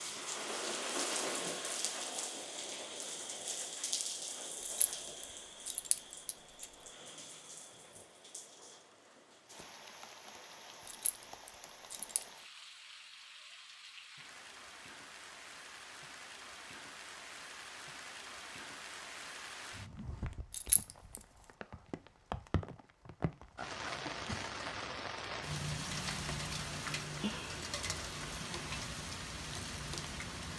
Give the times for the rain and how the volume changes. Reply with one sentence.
You can hear the rain from 0.0 to 30.5 s, getting quieter then louder.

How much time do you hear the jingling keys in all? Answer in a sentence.
You can hear the jingling keys for 4 seconds altogether.